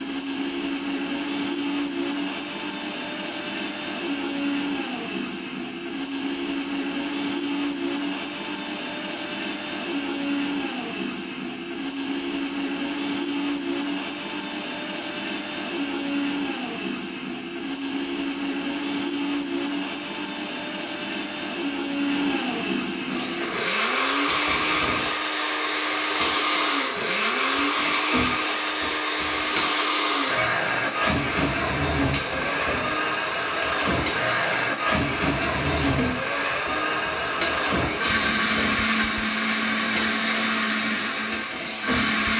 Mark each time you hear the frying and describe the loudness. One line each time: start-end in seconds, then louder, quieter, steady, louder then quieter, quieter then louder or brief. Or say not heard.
23.1-42.3 steady.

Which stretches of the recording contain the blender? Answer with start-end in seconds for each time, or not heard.
0.0-42.3.